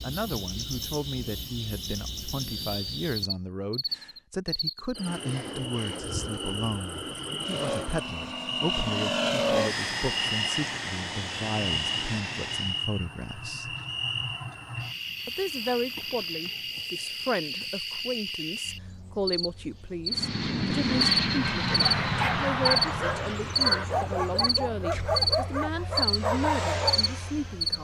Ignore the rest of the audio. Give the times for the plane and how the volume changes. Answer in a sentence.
The plane can be heard from 7.4 to 12.8 s, getting louder then quieter; and from 20.1 to 27.7 s, getting quieter then louder.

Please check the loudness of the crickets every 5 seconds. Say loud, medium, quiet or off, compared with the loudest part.
medium, medium, medium, medium, loud, loud.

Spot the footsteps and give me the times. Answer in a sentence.
The footsteps can't be heard in this clip.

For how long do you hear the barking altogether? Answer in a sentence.
You can hear the barking for 5 seconds altogether.